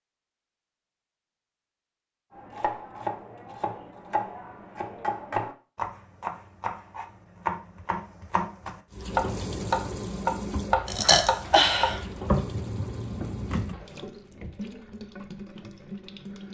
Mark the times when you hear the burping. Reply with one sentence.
You can hear the burping from 10.8 to 12.1 s.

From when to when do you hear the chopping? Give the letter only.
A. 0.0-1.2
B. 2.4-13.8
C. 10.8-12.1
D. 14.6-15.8
B.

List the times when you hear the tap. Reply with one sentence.
You can hear the tap from 8.9 to 16.4 s.